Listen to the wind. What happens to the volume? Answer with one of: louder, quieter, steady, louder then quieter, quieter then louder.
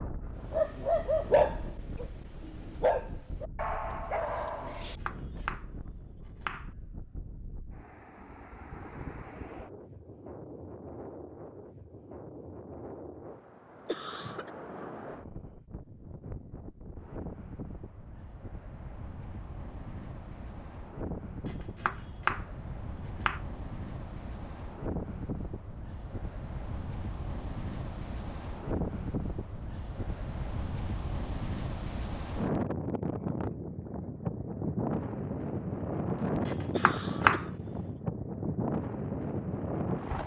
louder.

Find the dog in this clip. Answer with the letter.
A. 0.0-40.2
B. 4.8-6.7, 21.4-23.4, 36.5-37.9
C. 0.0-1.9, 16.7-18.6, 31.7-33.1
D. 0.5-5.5
D.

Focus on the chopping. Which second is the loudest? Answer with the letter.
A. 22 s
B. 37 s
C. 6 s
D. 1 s
B.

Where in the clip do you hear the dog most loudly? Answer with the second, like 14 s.
1 s.